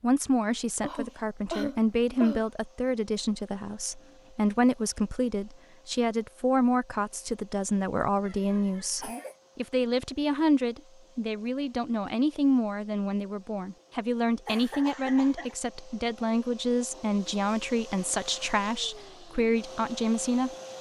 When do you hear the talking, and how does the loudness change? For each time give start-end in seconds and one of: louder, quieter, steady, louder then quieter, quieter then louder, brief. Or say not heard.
0.0-20.5 steady.